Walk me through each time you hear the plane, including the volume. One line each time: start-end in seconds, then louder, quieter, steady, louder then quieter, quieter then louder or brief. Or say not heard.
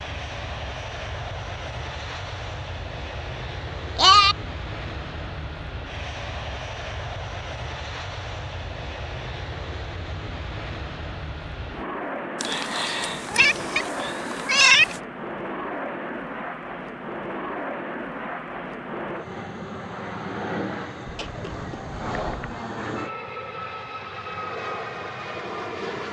0.0-26.0 steady.